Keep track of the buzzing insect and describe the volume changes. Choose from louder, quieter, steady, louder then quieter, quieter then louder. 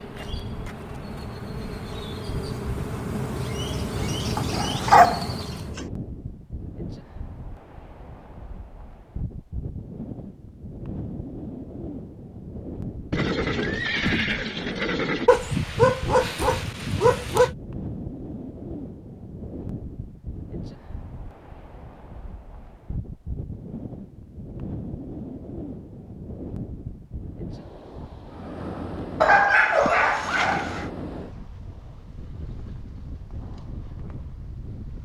louder.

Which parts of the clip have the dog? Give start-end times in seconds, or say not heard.
4.3-5.8, 15.2-17.5, 29.2-30.9.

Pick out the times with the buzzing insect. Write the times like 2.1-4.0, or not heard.
0.0-5.8.